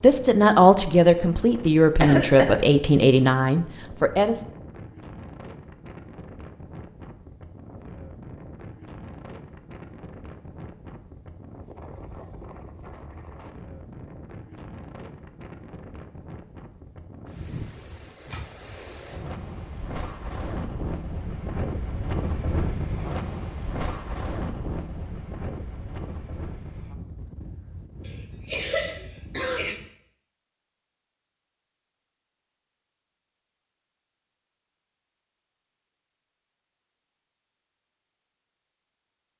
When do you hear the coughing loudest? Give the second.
2 s.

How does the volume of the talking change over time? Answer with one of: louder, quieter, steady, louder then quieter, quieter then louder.
quieter.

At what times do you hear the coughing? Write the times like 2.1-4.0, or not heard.
2.0-2.6, 28.1-29.8.